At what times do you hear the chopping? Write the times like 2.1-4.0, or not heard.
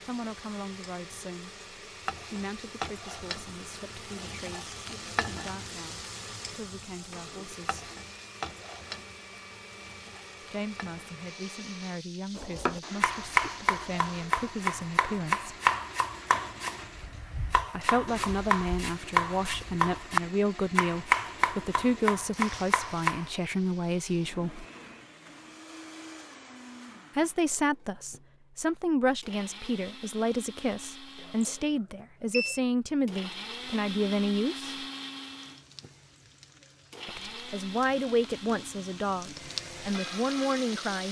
12.3-23.3.